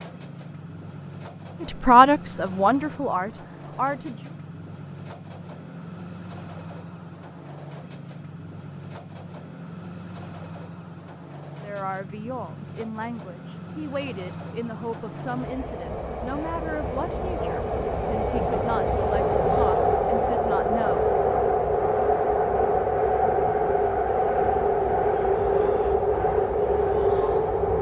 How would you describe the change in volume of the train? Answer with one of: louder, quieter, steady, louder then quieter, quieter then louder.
louder.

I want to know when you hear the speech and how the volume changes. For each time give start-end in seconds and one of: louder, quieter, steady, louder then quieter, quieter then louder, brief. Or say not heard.
1.6-4.3 brief
11.6-21.1 steady.